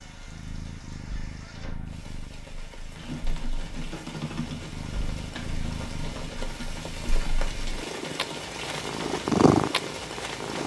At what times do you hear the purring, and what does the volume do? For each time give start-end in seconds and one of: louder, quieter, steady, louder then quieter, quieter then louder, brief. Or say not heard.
0.0-10.6 quieter then louder.